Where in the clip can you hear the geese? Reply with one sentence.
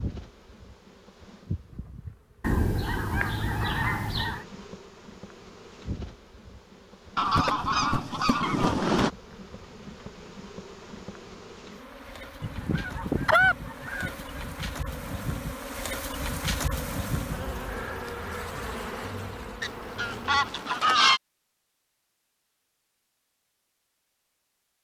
The geese can be heard from 2.4 to 4.5 s, from 7.2 to 9.1 s, from 12.4 to 14.4 s and from 19.6 to 21.2 s.